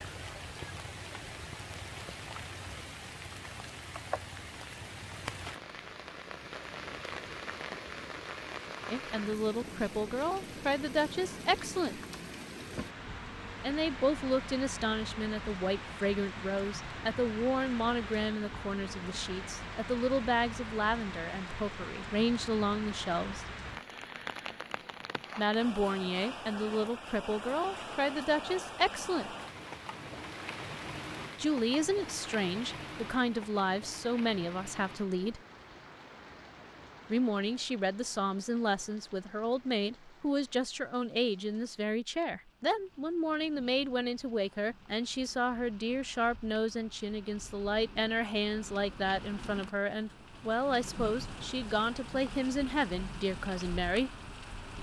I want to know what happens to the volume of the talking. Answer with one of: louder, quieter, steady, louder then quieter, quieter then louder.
steady.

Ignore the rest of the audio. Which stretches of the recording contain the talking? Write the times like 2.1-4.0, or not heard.
8.9-12.0, 13.6-23.4, 25.4-29.4, 31.4-35.4, 37.1-54.1.